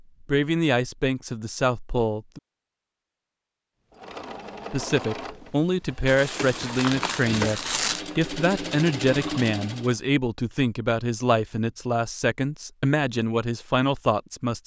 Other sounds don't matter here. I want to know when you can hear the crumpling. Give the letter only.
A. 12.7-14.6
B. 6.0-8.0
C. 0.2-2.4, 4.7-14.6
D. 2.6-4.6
B.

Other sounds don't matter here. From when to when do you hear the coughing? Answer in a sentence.
You can't hear the coughing here.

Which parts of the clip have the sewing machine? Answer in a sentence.
You can hear the sewing machine from 3.9 to 9.9 s.